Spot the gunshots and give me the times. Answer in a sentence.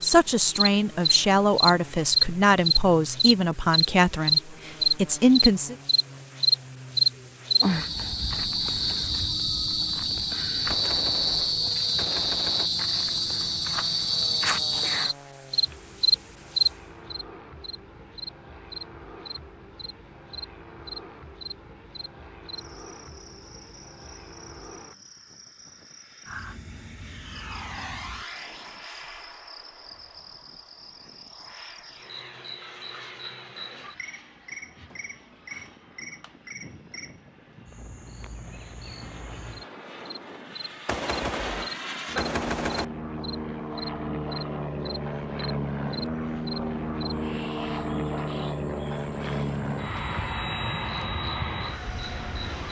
The gunshots can be heard from 10.7 to 12.7 s and from 40.9 to 42.9 s.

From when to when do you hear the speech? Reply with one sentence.
You can hear the speech from 0.0 to 5.8 s.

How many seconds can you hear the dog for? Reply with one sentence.
You can't hear the dog here.